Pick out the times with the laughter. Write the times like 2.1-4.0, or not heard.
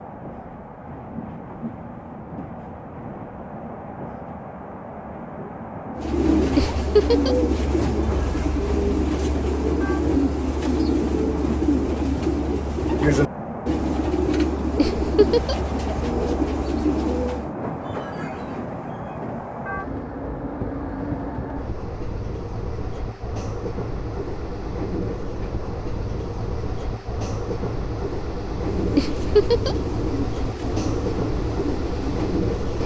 6.5-7.3, 14.8-15.6, 28.9-29.8.